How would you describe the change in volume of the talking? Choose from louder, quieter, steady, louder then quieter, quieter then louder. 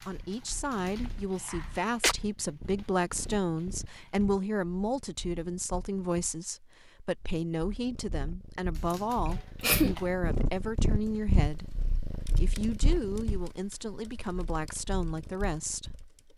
steady.